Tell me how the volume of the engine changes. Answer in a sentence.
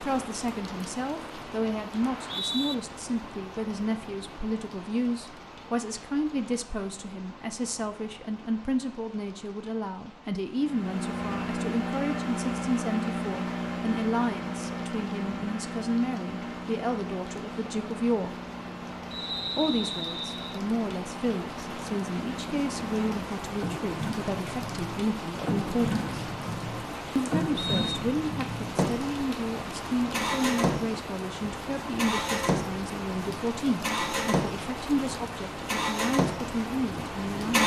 The loudness of the engine goes down, then up.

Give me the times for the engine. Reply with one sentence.
The engine can be heard from 10.6 to 37.6 s.